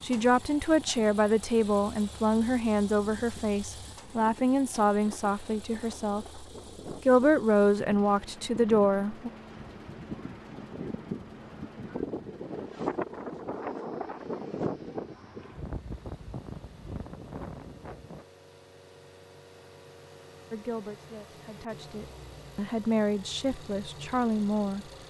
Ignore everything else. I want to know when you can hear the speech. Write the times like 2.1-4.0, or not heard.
0.0-9.3, 20.5-24.9.